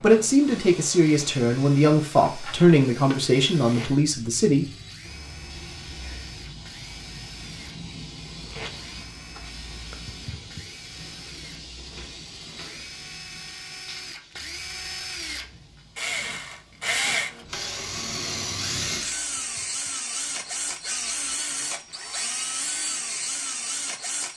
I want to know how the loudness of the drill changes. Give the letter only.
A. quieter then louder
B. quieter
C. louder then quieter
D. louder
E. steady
D.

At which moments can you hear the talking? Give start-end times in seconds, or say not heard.
0.0-4.7.